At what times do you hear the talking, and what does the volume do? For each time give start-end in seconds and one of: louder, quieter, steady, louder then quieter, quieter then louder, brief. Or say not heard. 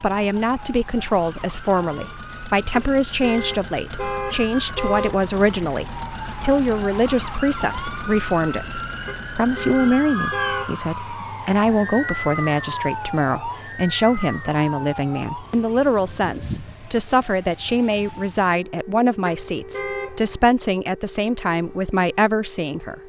0.0-23.0 steady.